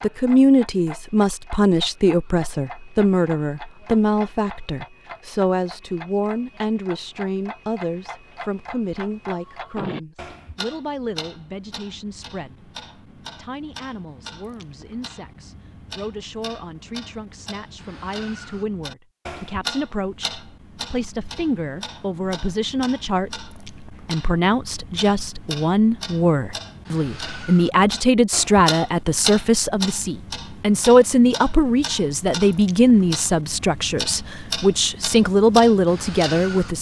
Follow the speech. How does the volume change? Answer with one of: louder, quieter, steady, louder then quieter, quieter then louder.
quieter then louder.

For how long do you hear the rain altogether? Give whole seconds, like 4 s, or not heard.
not heard.